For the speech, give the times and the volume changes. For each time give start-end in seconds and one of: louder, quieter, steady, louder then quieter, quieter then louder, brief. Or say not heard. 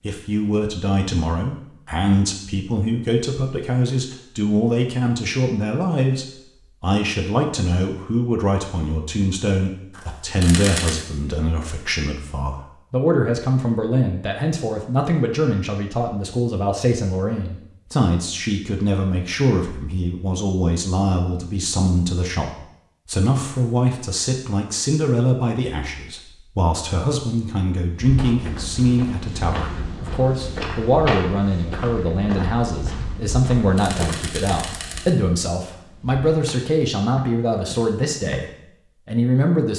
0.0-39.7 steady.